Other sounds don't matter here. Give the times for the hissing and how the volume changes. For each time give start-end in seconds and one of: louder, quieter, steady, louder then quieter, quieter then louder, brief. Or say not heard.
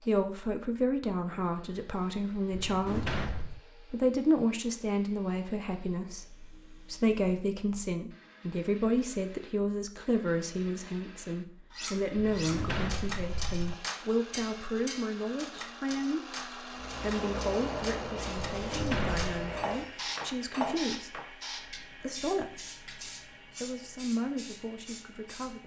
16.7-25.6 quieter.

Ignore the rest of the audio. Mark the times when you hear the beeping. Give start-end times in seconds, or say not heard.
not heard.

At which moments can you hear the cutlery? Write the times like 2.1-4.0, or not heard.
11.7-21.2.